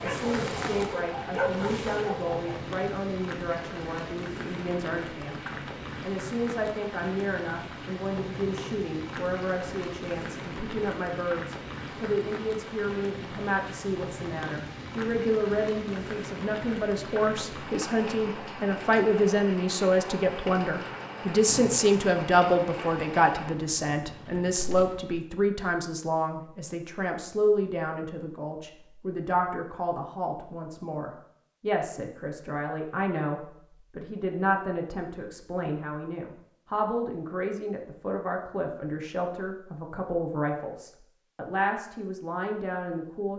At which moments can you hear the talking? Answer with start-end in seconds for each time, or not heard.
0.0-43.3.